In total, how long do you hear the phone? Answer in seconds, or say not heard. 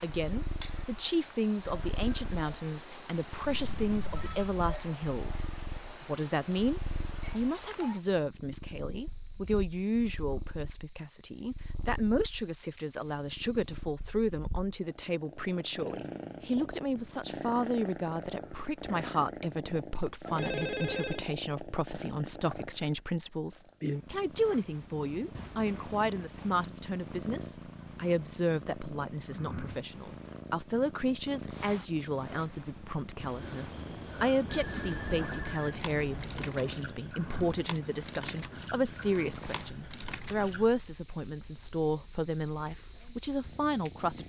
4 s.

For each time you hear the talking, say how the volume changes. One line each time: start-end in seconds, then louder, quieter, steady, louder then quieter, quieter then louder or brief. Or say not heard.
0.0-44.2 steady.